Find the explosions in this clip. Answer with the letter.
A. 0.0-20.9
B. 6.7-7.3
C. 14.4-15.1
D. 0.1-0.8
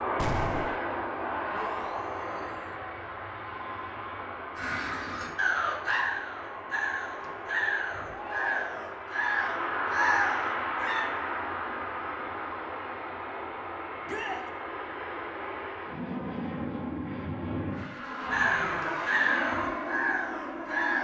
D.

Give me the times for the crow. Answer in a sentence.
The crow can be heard from 4.5 to 11.1 s and from 18.3 to 20.9 s.